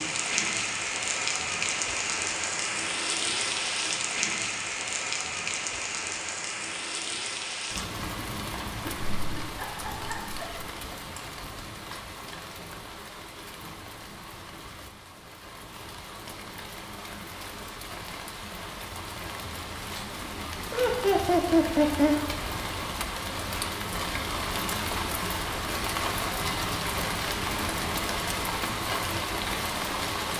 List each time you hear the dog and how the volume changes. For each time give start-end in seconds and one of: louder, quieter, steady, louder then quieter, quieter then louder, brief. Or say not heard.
not heard.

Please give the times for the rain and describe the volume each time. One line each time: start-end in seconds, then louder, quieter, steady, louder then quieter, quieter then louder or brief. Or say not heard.
0.0-30.3 quieter then louder.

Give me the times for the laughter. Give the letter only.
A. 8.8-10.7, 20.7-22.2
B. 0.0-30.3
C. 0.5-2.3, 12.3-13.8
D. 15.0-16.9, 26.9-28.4
A.